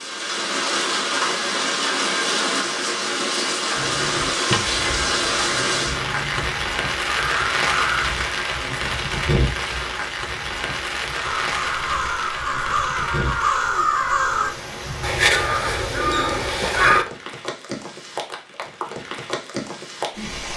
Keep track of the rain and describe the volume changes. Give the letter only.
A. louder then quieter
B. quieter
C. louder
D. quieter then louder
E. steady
B.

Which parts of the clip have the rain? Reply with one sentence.
The rain can be heard from 0.0 to 20.5 s.